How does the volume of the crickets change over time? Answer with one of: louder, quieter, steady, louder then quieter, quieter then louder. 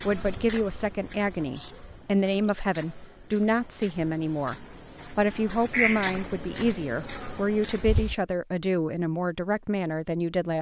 quieter then louder.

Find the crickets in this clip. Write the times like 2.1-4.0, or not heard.
0.0-8.2.